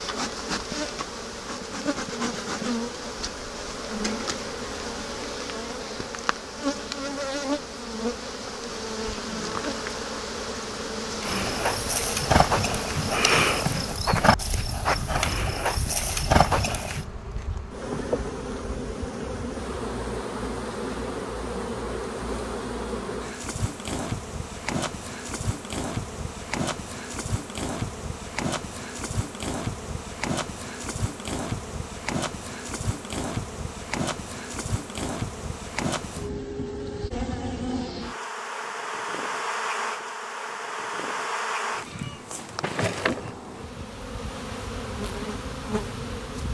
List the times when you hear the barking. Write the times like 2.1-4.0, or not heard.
not heard.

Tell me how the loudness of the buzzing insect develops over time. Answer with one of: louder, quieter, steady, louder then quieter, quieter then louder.
steady.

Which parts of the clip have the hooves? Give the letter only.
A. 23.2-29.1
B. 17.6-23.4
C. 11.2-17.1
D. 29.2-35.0
C.